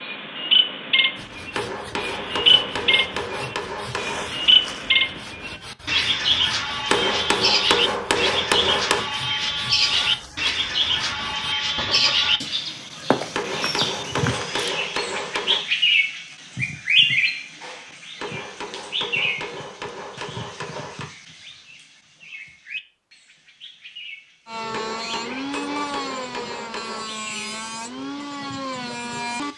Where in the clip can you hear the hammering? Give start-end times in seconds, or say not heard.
1.5-4.3, 6.8-9.1, 13.3-15.7, 18.1-21.1, 24.7-27.1.